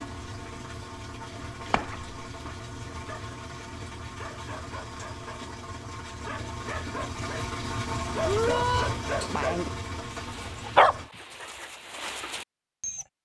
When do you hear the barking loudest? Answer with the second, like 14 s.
11 s.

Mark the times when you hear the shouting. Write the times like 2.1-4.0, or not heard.
8.2-8.9.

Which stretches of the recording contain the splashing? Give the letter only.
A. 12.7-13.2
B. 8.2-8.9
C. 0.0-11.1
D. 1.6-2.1
D.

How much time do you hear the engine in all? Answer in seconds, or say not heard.
11 s.